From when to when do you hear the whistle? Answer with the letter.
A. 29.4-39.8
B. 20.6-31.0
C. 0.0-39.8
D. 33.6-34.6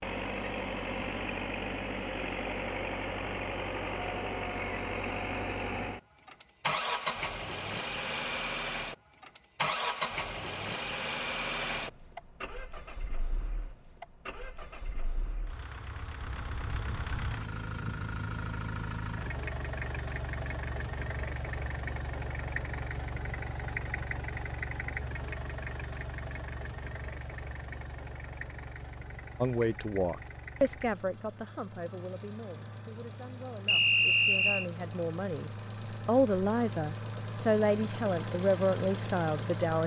D.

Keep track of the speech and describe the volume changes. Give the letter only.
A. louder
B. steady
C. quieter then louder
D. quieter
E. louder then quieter
C.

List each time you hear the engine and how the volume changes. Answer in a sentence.
You can hear the engine from 0.0 to 39.8 s, getting quieter.